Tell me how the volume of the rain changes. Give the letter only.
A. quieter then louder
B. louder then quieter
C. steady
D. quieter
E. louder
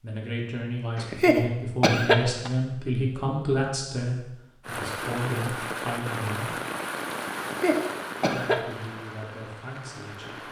D.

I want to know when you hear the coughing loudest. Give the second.
2 s.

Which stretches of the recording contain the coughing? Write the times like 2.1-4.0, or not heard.
0.9-2.5, 7.3-8.6.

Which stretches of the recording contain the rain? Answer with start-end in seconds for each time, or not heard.
4.6-10.4.